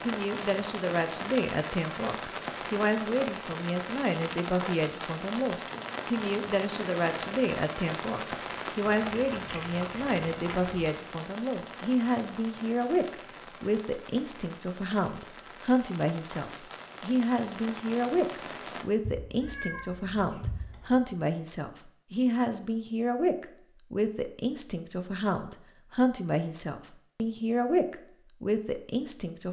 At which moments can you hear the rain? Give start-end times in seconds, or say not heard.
0.0-18.9.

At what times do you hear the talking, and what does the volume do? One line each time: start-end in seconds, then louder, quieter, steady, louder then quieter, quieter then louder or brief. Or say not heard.
0.0-29.4 steady.